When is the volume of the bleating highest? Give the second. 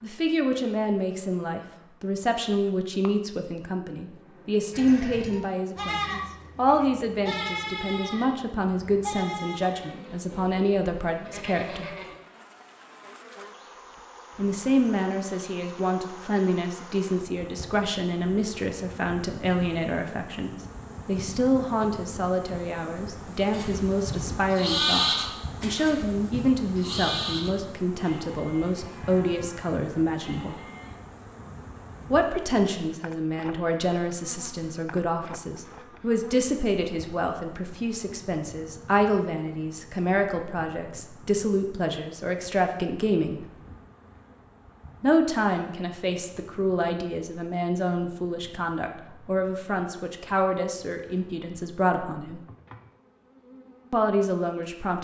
25 s.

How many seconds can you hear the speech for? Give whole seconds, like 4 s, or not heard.
48 s.